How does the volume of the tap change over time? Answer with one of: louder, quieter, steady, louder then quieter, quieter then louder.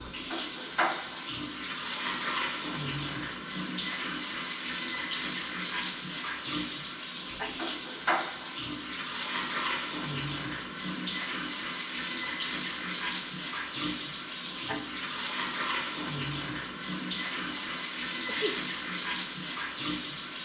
steady.